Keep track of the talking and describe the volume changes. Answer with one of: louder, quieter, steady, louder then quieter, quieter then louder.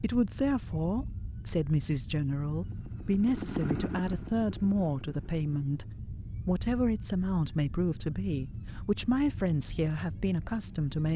steady.